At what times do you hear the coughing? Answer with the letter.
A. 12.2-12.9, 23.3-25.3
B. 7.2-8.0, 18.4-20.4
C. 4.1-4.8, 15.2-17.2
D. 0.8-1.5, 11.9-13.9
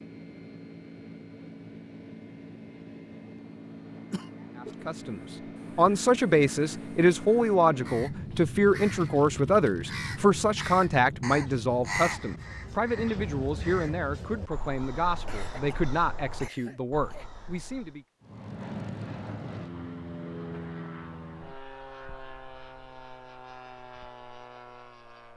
C.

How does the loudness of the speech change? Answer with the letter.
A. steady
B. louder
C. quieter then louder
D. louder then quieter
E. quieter
E.